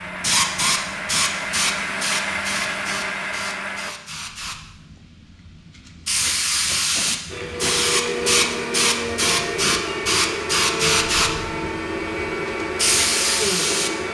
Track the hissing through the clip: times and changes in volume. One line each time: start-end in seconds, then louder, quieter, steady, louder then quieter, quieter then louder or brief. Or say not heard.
0.2-14.0 quieter then louder.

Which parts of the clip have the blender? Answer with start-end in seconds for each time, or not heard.
0.0-4.0, 7.3-14.0.